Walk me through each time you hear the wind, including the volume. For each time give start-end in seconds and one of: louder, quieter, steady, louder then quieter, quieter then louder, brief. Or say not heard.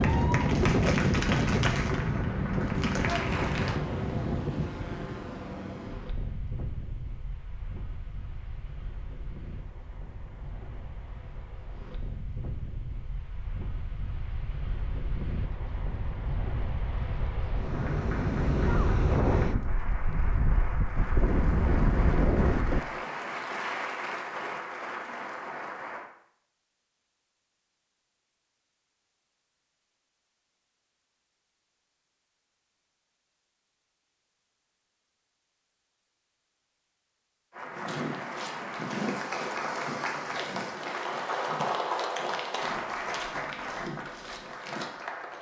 0.0-22.8 quieter then louder.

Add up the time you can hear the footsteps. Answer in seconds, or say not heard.
7 s.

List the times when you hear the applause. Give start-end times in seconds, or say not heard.
0.0-3.8, 17.6-26.1, 37.5-45.3.